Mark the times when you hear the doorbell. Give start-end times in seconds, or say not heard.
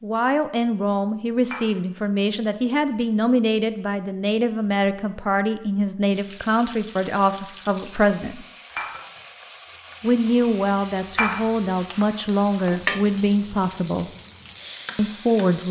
not heard.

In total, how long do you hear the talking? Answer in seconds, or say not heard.
13 s.